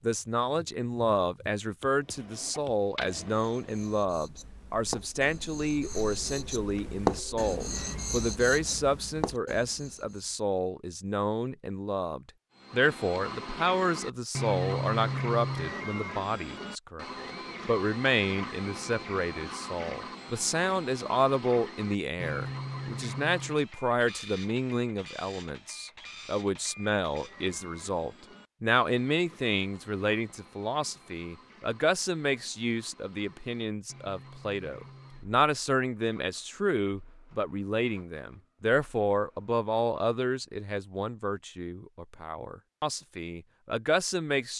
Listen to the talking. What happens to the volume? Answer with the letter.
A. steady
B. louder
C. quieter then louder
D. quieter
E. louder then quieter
A.